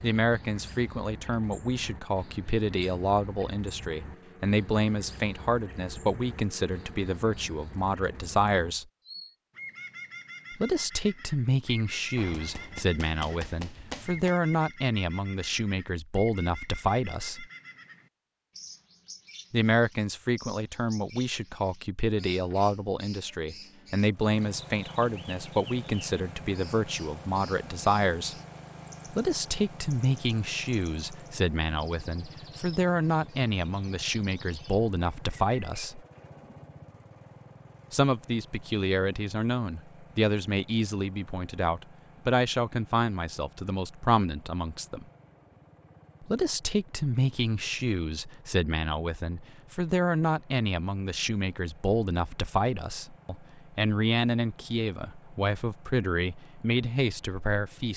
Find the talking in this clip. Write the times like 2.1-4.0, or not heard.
0.0-8.8, 10.5-17.4, 19.5-28.4, 29.1-36.0, 37.9-45.0, 46.2-57.9.